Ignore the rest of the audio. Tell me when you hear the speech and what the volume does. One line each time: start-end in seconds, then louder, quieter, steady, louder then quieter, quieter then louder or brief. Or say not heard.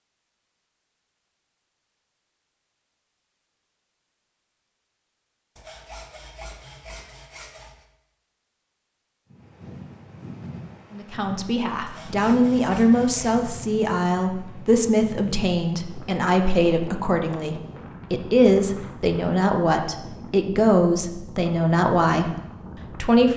10.9-23.3 steady.